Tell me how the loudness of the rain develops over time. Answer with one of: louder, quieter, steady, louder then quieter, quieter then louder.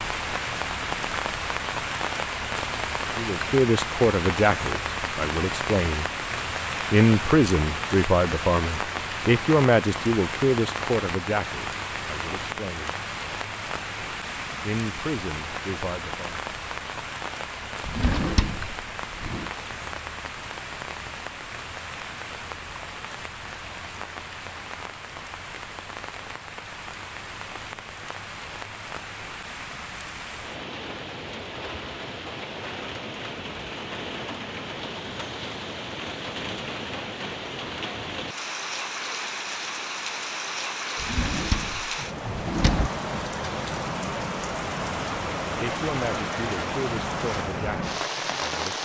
quieter then louder.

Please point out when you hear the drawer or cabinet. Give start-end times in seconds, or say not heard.
17.9-19.5, 41.0-42.9.